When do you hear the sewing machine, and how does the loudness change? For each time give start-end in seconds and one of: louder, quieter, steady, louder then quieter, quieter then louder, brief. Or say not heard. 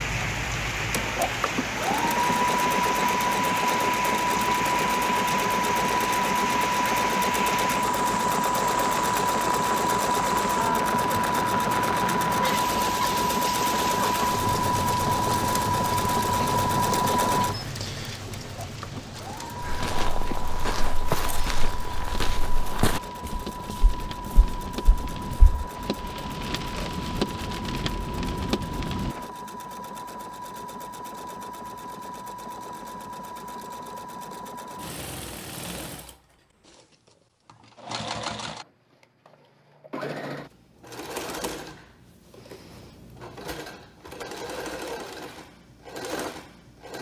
0.0-46.9 quieter.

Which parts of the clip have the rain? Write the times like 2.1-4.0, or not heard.
0.0-29.3.